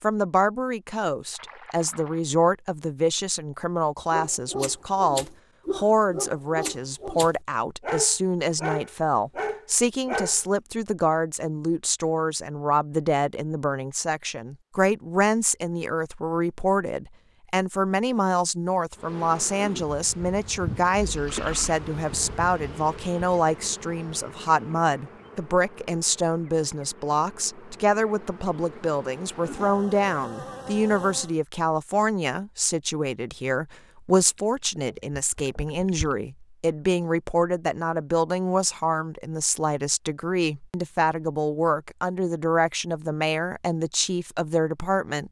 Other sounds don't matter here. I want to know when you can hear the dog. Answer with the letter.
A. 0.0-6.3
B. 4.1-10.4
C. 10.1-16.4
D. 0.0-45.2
B.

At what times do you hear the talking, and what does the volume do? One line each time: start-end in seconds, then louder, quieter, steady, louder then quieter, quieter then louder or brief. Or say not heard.
0.0-45.2 steady.